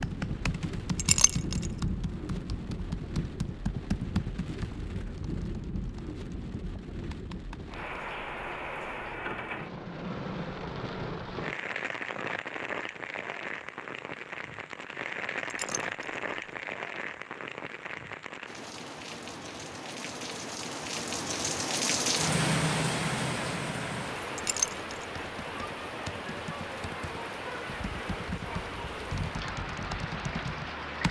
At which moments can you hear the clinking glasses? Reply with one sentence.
You can hear the clinking glasses from 0.9 to 1.7 s, from 15.5 to 16.2 s and from 24.4 to 25.1 s.